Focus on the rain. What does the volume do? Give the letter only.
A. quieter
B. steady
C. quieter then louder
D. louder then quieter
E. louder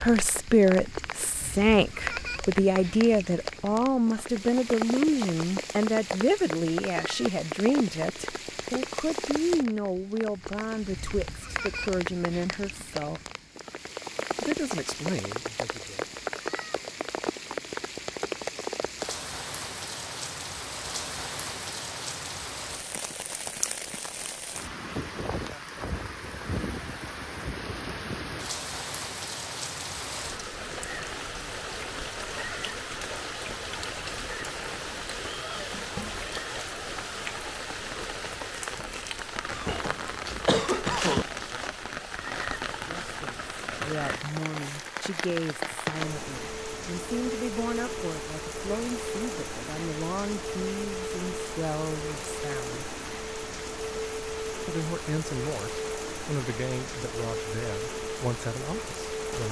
B.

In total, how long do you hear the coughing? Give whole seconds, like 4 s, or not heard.
2 s.